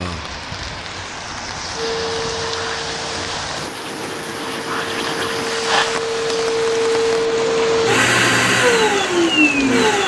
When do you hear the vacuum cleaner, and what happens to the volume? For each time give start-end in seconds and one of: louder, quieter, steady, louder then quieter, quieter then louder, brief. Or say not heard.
1.8-10.0 louder.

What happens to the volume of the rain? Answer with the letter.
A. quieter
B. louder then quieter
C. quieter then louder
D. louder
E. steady
E.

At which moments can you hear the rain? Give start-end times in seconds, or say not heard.
0.0-10.0.